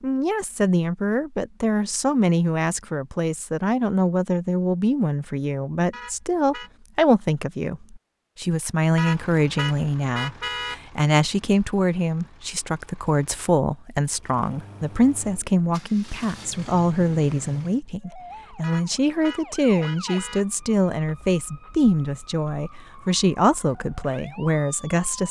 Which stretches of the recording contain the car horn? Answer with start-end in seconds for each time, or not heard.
5.9-6.7, 8.9-10.8, 18.6-20.4.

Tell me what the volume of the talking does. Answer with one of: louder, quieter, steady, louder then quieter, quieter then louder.
steady.